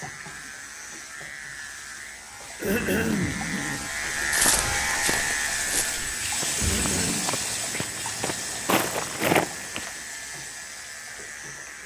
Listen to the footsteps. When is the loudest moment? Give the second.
9 s.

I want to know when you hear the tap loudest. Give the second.
7 s.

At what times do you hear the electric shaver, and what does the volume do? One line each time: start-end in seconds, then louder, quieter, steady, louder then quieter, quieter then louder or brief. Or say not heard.
0.0-11.8 louder then quieter.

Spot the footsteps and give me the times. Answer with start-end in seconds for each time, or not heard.
4.2-9.9.